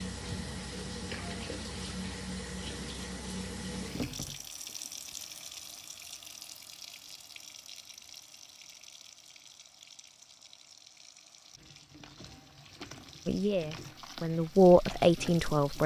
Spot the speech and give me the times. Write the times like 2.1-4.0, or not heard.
13.2-15.8.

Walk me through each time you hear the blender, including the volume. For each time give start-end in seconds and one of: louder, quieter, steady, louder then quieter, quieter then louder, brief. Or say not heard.
not heard.